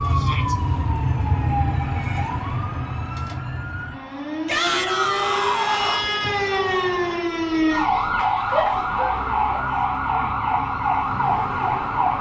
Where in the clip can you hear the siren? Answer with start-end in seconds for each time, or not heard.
0.0-12.1.